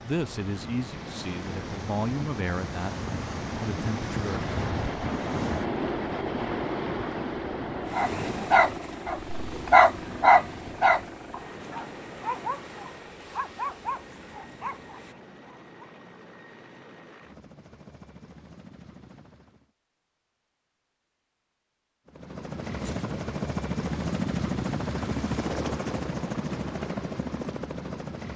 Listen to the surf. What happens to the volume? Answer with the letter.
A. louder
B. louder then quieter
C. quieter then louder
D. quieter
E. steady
B.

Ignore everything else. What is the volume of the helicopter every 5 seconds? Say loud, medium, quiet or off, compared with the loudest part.
medium, medium, quiet, quiet, loud, loud.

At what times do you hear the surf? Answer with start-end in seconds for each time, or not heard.
0.0-15.2.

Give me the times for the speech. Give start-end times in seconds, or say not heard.
0.0-4.5.